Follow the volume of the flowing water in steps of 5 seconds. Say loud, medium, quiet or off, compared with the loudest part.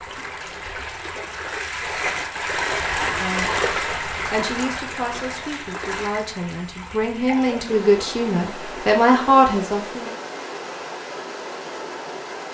loud, medium, medium.